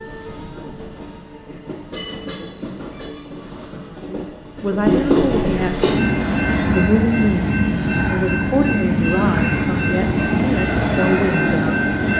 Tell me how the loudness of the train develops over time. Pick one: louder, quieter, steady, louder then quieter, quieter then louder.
louder.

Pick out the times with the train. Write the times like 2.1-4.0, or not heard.
0.0-12.1.